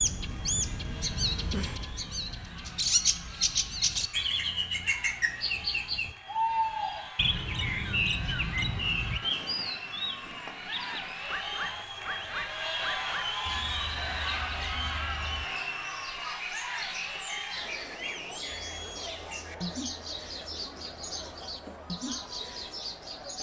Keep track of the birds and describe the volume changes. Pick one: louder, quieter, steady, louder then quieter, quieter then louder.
quieter.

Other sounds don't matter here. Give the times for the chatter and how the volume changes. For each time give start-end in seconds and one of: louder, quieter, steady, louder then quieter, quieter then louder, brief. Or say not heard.
0.0-23.3 louder then quieter.